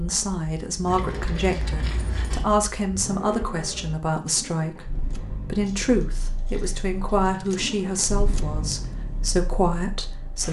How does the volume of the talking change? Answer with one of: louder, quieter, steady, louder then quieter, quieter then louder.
steady.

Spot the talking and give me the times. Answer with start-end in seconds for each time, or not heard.
0.0-10.4.